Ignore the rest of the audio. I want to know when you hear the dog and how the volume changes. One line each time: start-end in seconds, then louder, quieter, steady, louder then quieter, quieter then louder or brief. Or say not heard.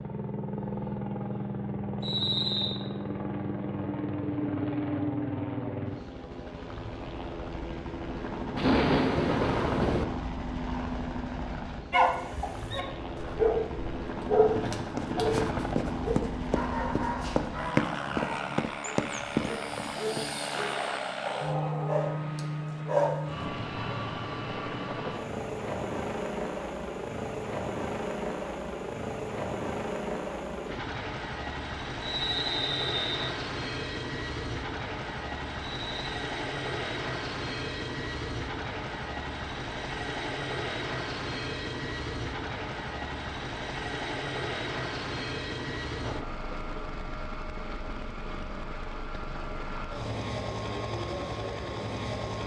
11.9-23.4 quieter then louder.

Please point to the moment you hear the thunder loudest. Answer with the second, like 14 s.
9 s.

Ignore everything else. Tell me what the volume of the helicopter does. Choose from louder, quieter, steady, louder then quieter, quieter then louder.
steady.